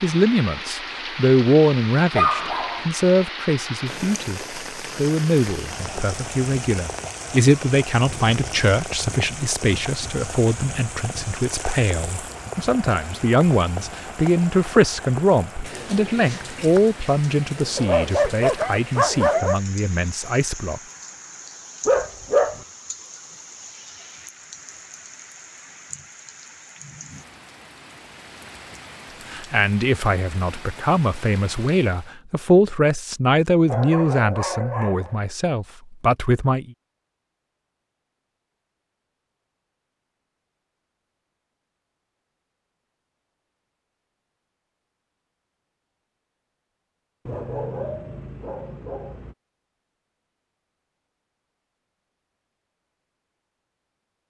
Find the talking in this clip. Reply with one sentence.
You can hear the talking from 0.0 to 20.8 s and from 29.3 to 36.7 s.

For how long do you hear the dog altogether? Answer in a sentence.
The dog can be heard for 7 seconds in total.